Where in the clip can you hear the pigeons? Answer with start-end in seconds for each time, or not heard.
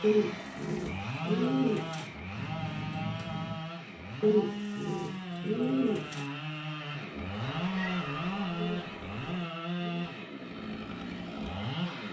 0.0-2.0, 4.2-6.2, 8.6-10.2.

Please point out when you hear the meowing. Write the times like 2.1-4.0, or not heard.
2.4-3.6, 7.3-9.4.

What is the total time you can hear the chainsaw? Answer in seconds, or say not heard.
12 s.